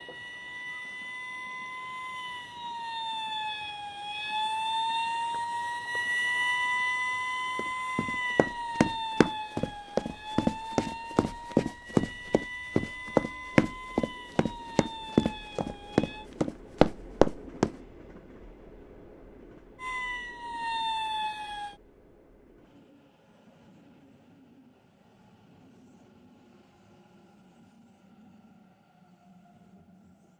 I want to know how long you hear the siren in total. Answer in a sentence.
You can hear the siren for 18 seconds altogether.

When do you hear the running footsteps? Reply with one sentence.
The running footsteps can be heard from 7.5 to 17.8 s.